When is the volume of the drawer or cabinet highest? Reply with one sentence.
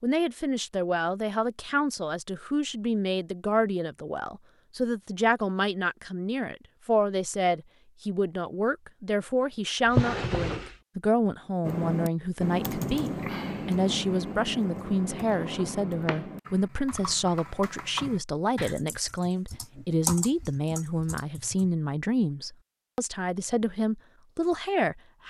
The volume of the drawer or cabinet peaks at 10 seconds.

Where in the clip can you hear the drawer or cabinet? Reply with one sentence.
You can hear the drawer or cabinet from 9.8 to 10.8 s and from 15.1 to 16.2 s.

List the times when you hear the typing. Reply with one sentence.
You can hear the typing from 11.6 to 21.7 s.